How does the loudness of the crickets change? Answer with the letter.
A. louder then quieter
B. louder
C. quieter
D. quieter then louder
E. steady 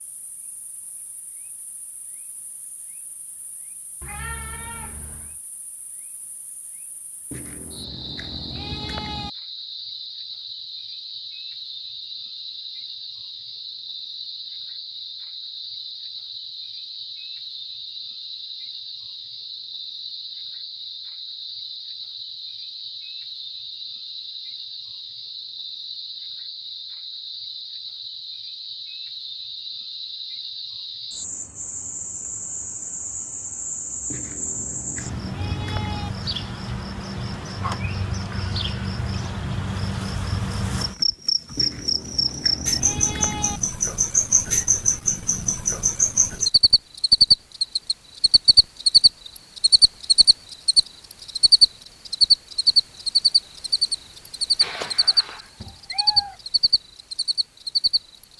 B.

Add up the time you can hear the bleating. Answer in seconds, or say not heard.
6 s.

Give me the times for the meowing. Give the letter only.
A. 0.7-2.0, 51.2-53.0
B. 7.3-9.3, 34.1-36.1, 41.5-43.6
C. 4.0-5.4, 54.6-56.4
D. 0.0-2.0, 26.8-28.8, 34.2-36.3
C.